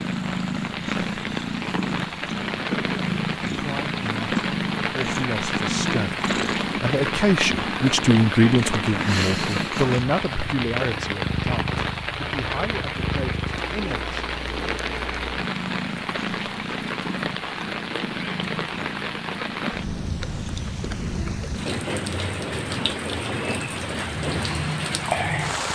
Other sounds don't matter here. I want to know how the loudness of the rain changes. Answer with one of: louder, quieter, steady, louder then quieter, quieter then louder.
steady.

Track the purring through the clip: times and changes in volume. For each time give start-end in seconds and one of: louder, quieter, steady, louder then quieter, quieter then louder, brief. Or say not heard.
0.0-25.7 quieter.